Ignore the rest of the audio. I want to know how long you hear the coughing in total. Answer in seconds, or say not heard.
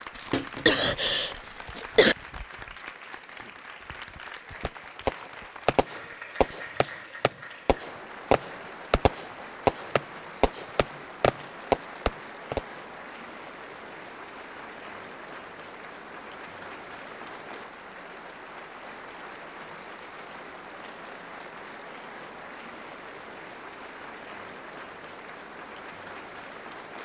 2 s.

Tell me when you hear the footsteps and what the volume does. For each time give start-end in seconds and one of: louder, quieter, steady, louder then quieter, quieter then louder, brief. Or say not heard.
not heard.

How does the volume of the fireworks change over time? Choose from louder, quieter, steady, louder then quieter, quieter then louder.
quieter then louder.